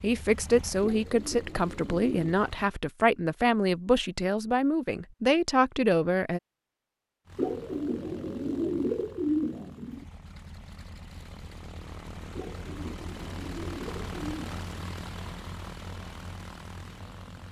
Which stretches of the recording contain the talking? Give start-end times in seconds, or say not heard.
0.0-6.4.